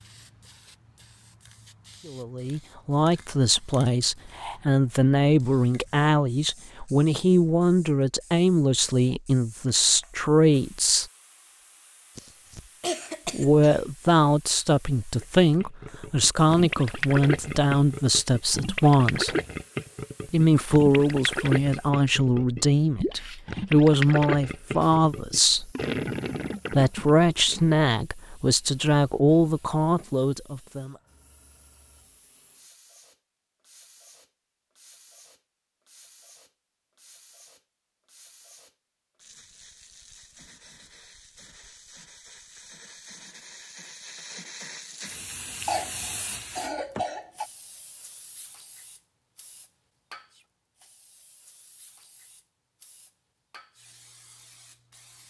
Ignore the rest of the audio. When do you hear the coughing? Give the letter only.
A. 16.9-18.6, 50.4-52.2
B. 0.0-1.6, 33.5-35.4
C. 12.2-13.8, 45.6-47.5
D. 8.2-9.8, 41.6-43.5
C.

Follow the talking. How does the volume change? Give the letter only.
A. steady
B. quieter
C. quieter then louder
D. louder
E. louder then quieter
A.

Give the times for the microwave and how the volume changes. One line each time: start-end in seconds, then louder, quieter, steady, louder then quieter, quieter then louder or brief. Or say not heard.
not heard.